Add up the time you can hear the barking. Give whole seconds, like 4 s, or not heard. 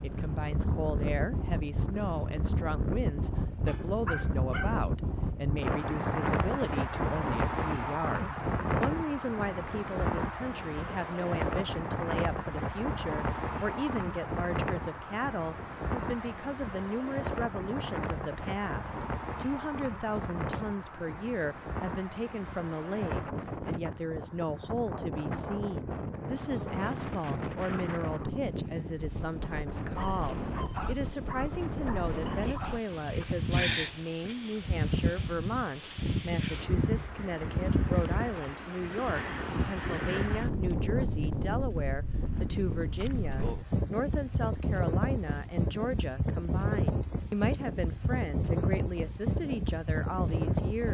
4 s.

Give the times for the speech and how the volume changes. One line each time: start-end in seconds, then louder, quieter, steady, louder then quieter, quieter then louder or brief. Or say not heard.
0.0-50.8 steady.